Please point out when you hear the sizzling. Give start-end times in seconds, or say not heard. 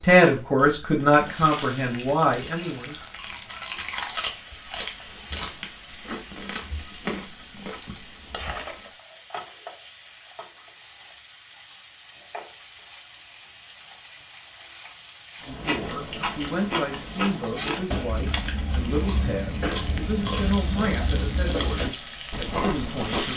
0.1-23.3.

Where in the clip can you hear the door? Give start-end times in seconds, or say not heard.
not heard.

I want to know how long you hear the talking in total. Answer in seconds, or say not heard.
11 s.